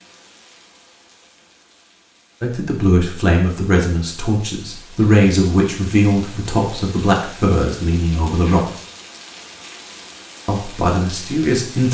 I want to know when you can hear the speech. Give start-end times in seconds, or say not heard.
2.4-8.7, 10.4-11.8.